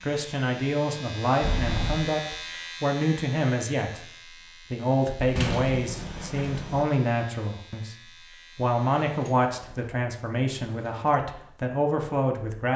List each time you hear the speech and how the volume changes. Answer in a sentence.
You can hear the speech from 0.0 to 12.7 s, at a steady volume.